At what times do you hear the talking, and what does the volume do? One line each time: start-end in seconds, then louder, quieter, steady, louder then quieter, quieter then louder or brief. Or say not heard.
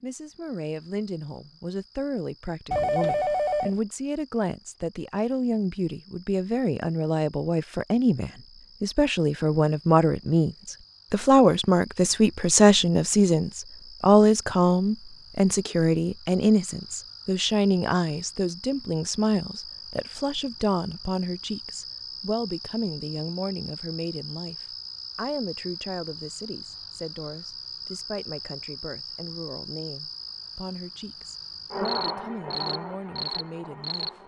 0.0-24.6 louder then quieter
25.1-34.2 steady.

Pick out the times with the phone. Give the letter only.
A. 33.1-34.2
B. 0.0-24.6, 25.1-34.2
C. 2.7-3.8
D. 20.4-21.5
C.